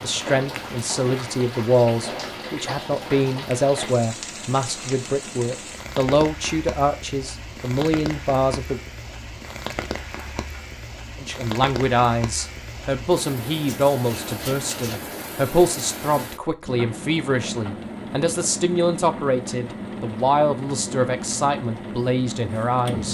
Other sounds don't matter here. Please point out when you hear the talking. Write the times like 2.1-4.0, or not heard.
0.0-8.8, 11.2-23.0.